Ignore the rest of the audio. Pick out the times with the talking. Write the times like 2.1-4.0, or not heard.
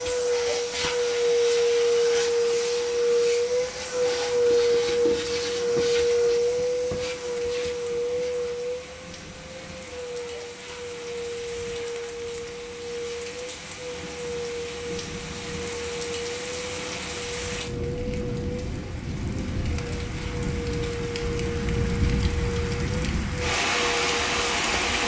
not heard.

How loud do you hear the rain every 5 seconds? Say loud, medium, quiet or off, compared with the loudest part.
quiet, quiet, quiet, medium, loud.